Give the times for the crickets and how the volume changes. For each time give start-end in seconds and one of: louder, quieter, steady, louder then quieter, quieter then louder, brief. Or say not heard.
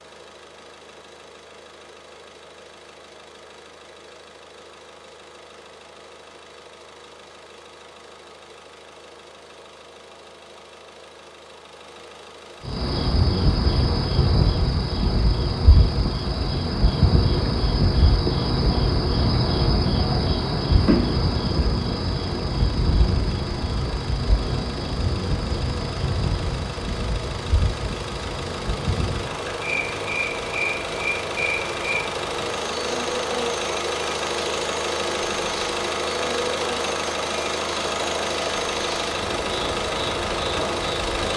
12.7-41.3 quieter.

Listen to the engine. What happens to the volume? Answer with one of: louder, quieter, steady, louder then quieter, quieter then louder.
louder.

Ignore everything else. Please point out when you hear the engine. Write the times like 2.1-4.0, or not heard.
0.0-41.3.